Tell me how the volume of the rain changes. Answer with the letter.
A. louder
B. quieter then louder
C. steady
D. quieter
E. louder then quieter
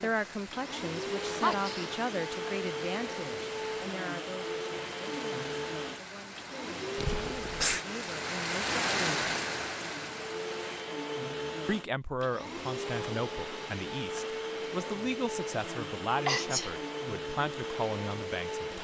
A.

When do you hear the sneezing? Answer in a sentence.
The sneezing can be heard from 1.4 to 1.9 s, from 7.0 to 7.8 s and from 16.2 to 16.8 s.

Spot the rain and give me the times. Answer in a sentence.
The rain can be heard from 0.0 to 10.9 s.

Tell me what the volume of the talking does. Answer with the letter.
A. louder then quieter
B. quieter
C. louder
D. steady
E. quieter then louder
E.